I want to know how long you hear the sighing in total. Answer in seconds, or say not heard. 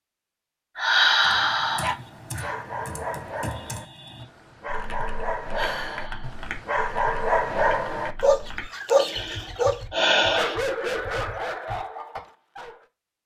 4 s.